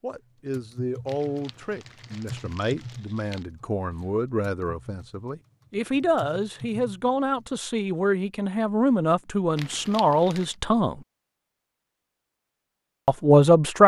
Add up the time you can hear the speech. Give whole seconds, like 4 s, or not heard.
12 s.